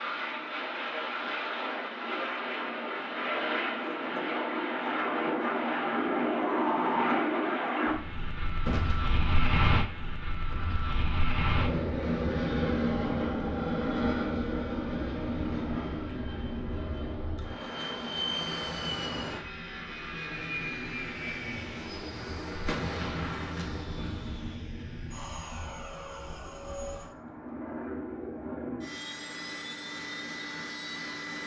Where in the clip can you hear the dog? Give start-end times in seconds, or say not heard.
not heard.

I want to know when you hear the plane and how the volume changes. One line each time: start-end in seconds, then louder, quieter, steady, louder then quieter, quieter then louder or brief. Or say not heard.
0.0-31.4 quieter.